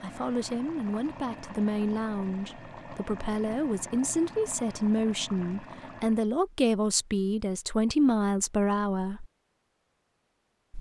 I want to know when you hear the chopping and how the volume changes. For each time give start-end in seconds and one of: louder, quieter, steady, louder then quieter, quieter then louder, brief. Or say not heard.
not heard.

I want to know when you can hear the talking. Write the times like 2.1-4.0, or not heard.
0.0-9.2.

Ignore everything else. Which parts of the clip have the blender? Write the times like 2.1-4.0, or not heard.
not heard.